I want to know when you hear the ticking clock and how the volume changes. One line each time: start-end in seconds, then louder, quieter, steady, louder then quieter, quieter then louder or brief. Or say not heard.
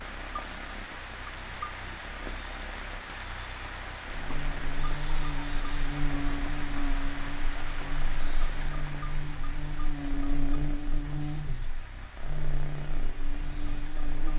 not heard.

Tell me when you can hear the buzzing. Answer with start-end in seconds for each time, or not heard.
4.0-14.3.